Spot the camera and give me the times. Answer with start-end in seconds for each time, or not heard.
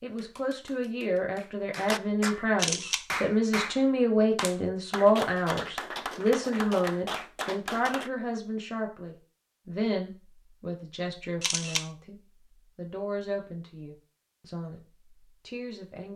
2.5-3.0, 11.4-11.9.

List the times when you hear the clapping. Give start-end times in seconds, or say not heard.
0.1-8.1.